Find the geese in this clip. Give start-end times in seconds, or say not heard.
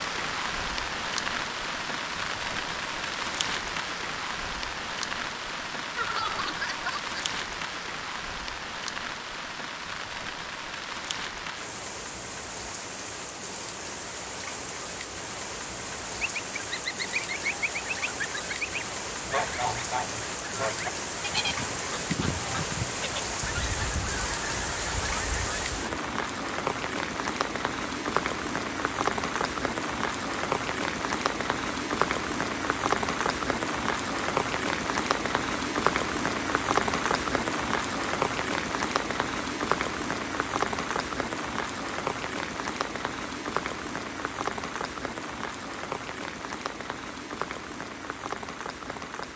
16.2-25.9.